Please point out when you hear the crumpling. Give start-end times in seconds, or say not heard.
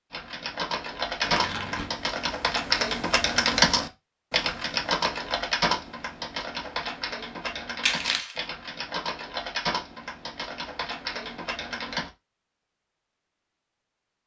1.2-1.9, 7.8-8.4.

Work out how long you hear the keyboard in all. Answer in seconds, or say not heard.
12 s.